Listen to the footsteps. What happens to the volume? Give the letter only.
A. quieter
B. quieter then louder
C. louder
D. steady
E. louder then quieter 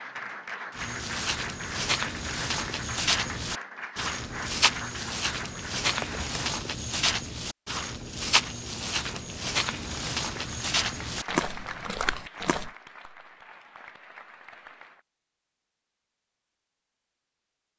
D.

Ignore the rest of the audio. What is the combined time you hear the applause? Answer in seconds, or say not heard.
13 s.